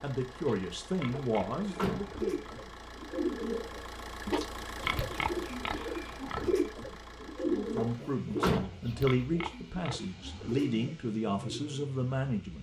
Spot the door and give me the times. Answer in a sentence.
The door can be heard from 1.1 to 2.1 s and from 7.8 to 8.8 s.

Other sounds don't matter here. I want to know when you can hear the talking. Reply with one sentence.
The talking can be heard from 0.0 to 2.4 s and from 7.5 to 12.5 s.